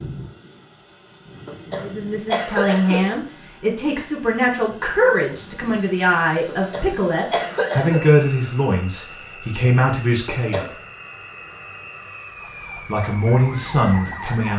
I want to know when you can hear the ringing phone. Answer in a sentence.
The ringing phone can't be heard in this clip.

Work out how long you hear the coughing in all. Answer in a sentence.
You can hear the coughing for 4 seconds altogether.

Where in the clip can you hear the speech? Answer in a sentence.
You can hear the speech from 1.8 to 10.7 s and from 12.8 to 14.5 s.